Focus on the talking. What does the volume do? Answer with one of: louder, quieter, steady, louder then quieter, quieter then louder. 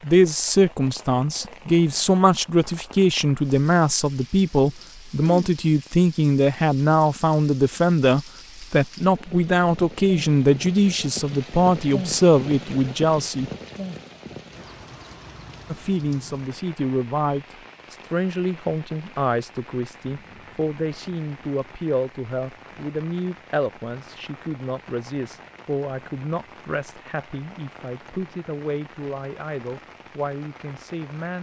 quieter.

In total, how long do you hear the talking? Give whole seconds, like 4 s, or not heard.
29 s.